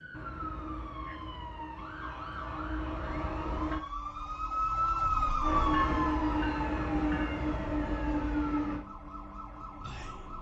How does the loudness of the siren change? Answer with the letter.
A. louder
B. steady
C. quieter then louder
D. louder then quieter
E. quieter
D.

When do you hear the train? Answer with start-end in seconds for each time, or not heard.
0.0-3.8, 5.4-10.3.